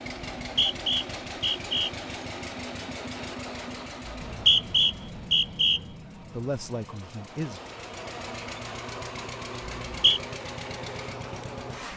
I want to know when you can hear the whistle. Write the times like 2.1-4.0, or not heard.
0.4-1.9, 4.0-5.8, 9.7-10.2.